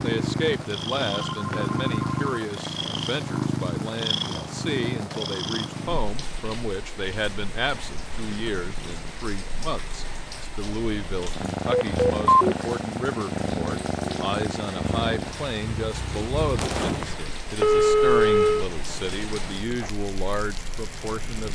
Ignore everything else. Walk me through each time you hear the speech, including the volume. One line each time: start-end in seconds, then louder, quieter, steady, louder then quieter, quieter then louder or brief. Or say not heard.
0.0-21.4 steady.